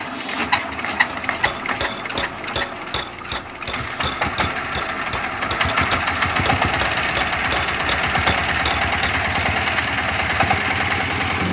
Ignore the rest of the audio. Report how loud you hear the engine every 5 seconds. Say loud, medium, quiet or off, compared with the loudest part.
medium, loud, loud.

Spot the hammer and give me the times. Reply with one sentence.
You can hear the hammer from 1.1 to 9.2 s.